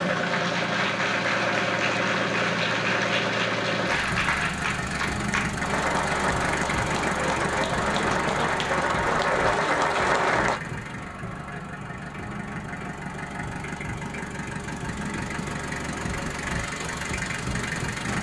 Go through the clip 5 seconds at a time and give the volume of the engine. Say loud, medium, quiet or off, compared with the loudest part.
loud, loud, medium, loud.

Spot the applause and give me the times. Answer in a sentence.
The applause can be heard from 0.0 to 10.6 s.